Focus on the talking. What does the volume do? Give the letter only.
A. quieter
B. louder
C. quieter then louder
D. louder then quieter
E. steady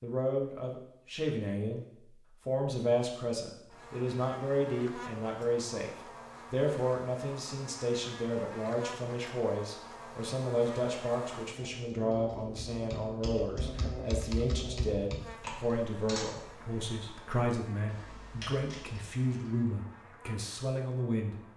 E.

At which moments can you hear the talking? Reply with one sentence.
You can hear the talking from 0.0 to 21.4 s.